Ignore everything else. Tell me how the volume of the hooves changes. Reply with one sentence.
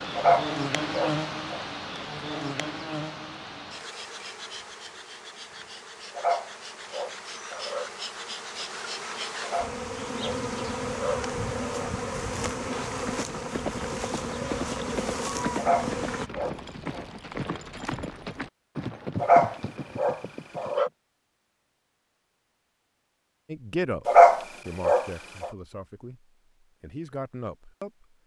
The volume of the hooves stays about the same.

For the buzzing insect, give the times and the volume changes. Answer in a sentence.
You can hear the buzzing insect from 0.0 to 16.3 s, getting quieter then louder.